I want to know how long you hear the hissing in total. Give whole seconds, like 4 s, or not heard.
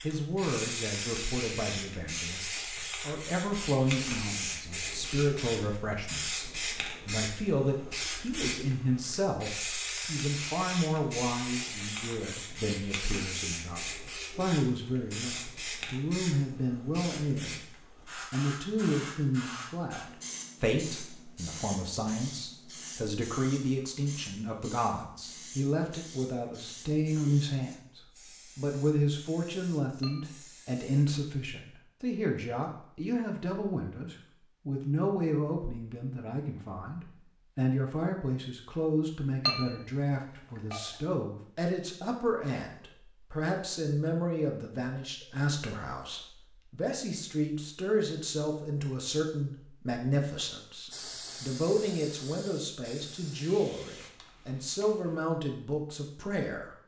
35 s.